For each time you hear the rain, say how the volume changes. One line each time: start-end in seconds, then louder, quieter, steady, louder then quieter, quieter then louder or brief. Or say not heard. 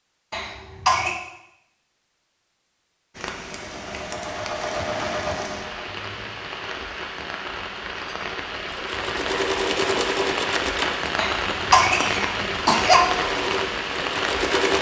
3.1-14.7 louder.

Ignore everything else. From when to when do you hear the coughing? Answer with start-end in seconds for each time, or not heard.
0.3-1.1, 11.2-13.1.